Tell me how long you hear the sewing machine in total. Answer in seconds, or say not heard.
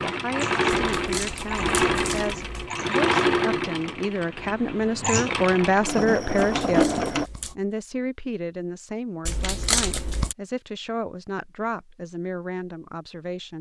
7 s.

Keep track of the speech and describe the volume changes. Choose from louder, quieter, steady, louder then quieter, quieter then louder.
louder then quieter.